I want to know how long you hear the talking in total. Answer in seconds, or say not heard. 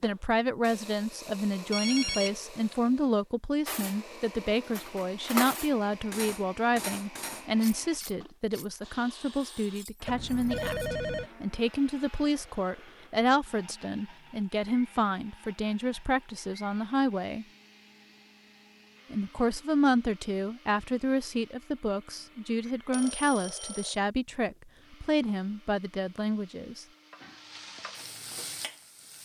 25 s.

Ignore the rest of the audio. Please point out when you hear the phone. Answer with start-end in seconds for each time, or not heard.
1.7-2.8, 10.1-11.3, 22.6-23.9.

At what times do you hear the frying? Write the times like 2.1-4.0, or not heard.
26.5-29.2.